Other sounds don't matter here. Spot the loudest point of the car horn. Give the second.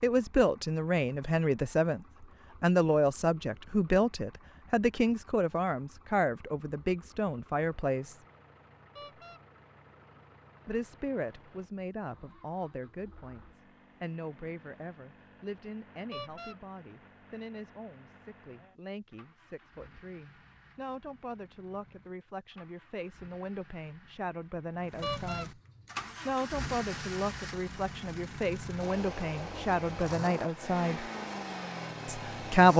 25 s.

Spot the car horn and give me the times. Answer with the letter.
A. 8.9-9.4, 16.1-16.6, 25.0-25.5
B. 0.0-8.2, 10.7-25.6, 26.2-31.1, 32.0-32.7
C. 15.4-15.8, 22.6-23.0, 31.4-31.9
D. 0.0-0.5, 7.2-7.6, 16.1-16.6
A.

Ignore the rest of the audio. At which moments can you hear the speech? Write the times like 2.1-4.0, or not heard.
0.0-8.2, 10.7-25.6, 26.2-31.1, 32.0-32.7.